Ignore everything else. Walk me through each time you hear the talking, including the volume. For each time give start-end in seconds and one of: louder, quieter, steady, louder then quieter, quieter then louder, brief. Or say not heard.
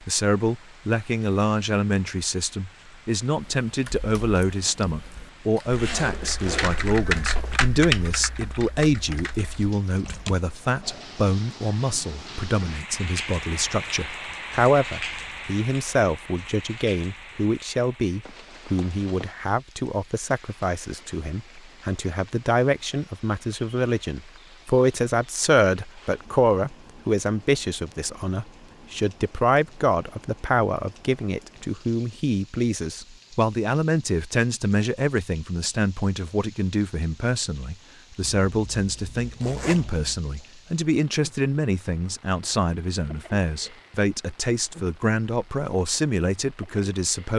0.1-47.3 steady.